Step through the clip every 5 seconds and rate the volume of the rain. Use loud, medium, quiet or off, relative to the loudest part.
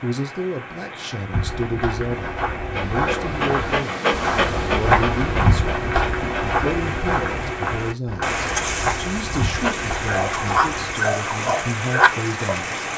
medium, loud, loud.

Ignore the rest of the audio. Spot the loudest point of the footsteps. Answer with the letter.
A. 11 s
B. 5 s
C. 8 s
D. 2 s
B.